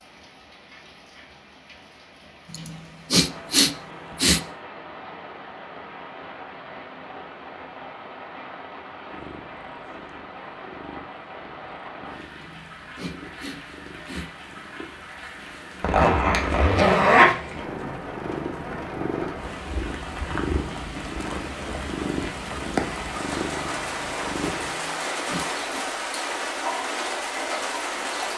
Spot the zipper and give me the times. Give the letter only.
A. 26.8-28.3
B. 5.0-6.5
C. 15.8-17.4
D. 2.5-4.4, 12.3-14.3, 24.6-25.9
C.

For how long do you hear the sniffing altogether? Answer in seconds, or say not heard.
5 s.